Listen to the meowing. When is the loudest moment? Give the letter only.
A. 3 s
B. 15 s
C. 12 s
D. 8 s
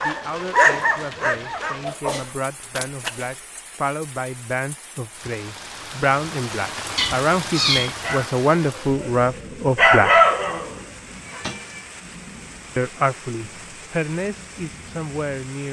D.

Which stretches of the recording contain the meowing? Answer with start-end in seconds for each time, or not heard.
2.0-3.4, 7.0-8.3, 11.2-11.9.